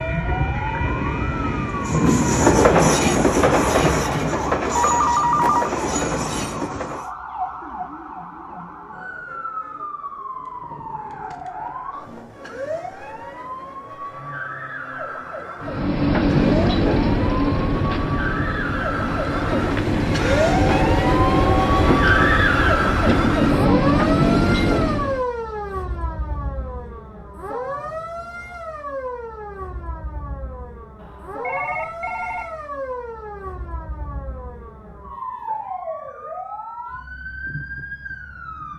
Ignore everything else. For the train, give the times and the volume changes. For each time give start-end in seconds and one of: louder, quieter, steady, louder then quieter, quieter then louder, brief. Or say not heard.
0.0-7.1 louder then quieter
15.6-25.2 quieter then louder.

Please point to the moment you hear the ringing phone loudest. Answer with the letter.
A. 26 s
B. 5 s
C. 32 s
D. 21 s
B.